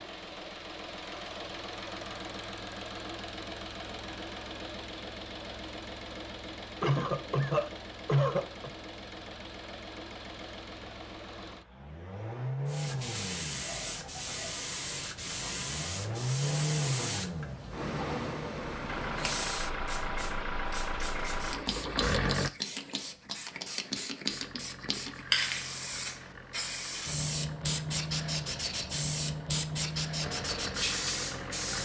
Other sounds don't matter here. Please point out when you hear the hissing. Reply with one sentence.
The hissing can be heard from 12.7 to 31.8 s.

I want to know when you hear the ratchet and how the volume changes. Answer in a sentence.
You can't hear the ratchet here.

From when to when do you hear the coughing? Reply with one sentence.
You can hear the coughing from 6.8 to 8.7 s.